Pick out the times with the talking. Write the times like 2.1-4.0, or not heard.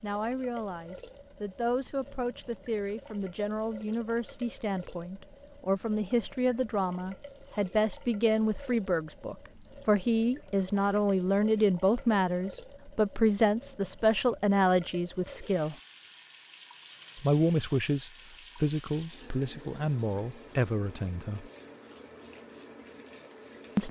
0.0-15.8, 17.1-21.5.